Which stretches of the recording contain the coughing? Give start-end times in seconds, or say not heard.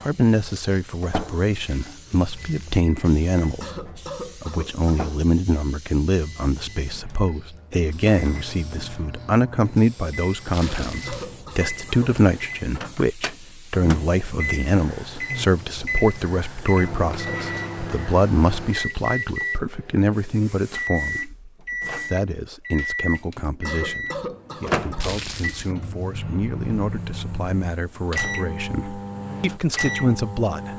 3.6-5.0, 10.6-12.2, 23.6-25.2.